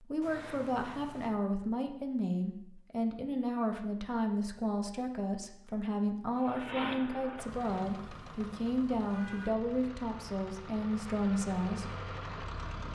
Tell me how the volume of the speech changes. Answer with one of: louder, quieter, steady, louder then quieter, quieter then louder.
steady.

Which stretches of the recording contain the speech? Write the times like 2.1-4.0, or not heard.
0.0-12.0.